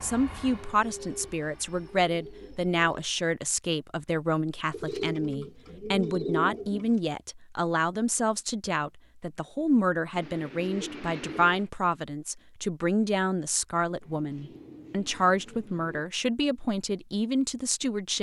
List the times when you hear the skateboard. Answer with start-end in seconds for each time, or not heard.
not heard.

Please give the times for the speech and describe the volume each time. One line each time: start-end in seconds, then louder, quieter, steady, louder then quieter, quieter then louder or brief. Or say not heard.
0.0-18.1 steady.